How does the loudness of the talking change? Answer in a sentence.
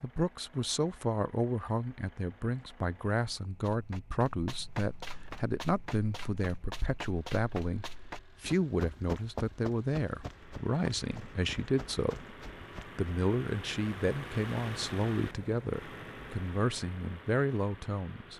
The loudness of the talking stays about the same.